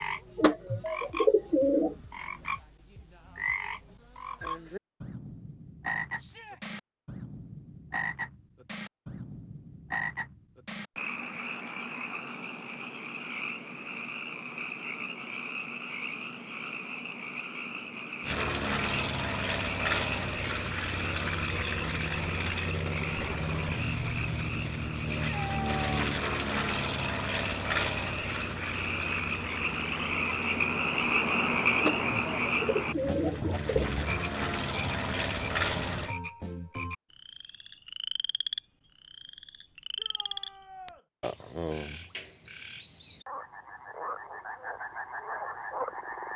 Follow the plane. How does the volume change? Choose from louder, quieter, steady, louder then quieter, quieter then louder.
quieter then louder.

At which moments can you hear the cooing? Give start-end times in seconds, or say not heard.
0.3-1.9, 31.8-34.0.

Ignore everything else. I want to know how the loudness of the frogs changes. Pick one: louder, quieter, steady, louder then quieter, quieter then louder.
louder then quieter.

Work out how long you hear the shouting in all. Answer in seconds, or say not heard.
2 s.